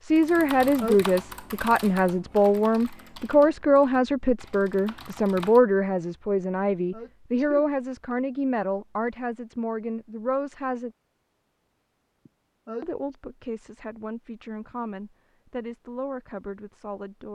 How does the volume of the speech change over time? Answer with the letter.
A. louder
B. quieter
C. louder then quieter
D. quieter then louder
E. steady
B.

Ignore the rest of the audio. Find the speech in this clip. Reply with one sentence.
The speech can be heard from 0.0 to 10.9 s and from 12.8 to 17.3 s.